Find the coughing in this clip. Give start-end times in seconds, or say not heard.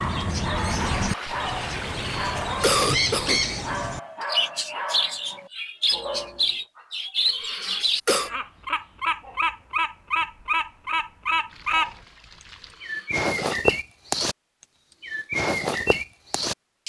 2.1-3.5, 7.3-8.3, 12.6-13.6.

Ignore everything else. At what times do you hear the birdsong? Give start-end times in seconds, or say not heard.
0.0-11.9, 12.8-14.3, 15.0-16.8.